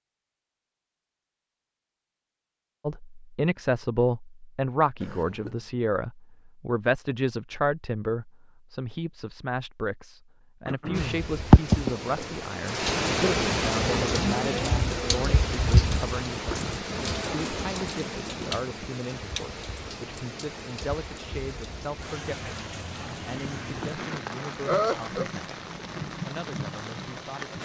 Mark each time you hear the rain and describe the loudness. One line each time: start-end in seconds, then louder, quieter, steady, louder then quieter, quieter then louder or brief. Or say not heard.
10.9-27.6 quieter.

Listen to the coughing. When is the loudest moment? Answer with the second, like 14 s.
25 s.